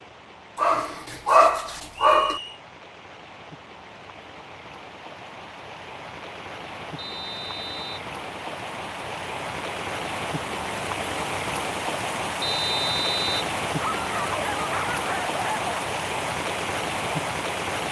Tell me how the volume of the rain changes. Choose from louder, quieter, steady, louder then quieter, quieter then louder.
louder.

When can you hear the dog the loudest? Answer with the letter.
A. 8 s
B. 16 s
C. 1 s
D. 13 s
C.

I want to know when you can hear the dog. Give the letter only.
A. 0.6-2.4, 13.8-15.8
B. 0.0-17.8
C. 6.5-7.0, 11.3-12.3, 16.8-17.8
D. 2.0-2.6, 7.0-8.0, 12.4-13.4
A.